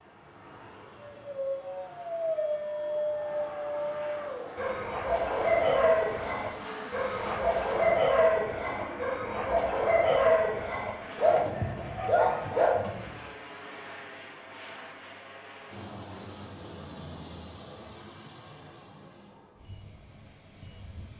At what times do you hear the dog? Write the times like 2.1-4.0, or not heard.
1.0-13.2.